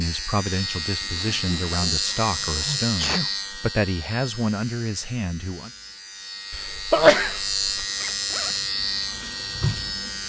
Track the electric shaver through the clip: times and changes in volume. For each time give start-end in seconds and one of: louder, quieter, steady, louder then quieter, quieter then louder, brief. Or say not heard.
0.0-10.2 quieter then louder.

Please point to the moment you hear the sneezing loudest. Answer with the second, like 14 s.
7 s.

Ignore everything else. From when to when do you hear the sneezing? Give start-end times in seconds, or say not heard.
2.1-3.3, 6.5-7.8.